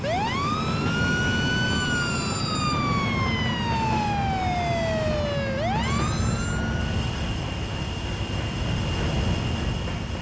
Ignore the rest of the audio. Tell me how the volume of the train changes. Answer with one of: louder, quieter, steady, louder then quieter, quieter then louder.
steady.